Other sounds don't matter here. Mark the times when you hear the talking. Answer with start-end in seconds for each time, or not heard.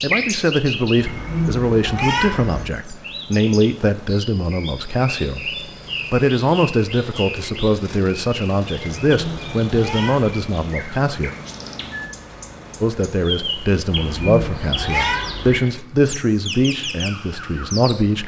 0.0-11.3, 12.8-18.2.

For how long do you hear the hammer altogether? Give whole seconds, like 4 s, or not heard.
not heard.